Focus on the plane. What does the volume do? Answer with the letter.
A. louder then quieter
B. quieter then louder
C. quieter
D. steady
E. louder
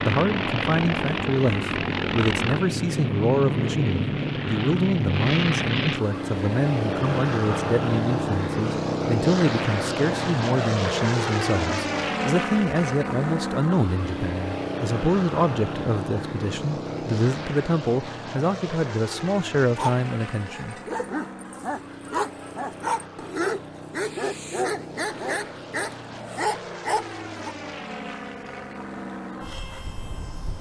C.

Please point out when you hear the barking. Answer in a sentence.
You can hear the barking from 19.8 to 27.6 s.